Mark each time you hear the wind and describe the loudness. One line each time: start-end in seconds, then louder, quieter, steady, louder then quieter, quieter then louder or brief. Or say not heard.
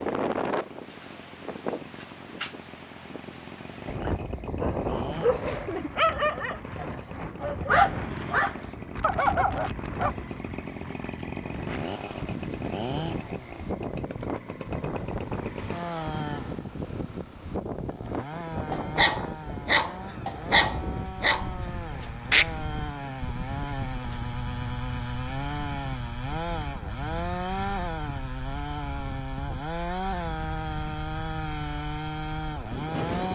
0.0-33.3 quieter.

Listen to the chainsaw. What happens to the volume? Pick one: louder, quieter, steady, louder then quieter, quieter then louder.
louder.